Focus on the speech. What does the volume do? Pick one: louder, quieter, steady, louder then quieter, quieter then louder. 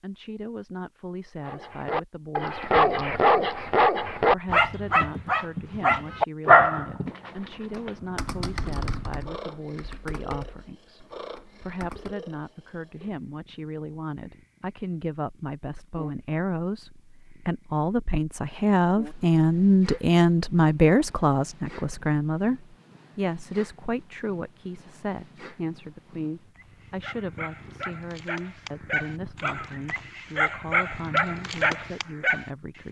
louder then quieter.